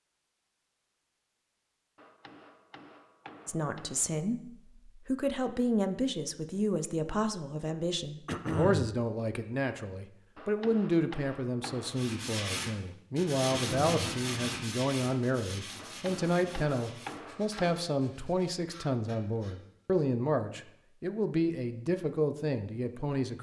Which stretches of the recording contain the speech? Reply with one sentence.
The speech can be heard from 3.5 to 23.3 s.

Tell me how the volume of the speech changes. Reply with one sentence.
The volume of the speech stays about the same.